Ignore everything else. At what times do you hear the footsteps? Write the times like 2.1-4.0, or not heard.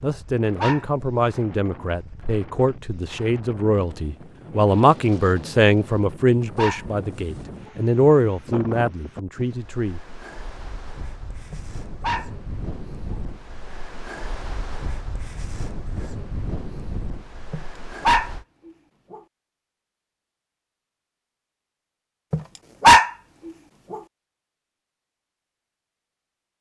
not heard.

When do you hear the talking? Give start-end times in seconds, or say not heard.
0.0-10.0.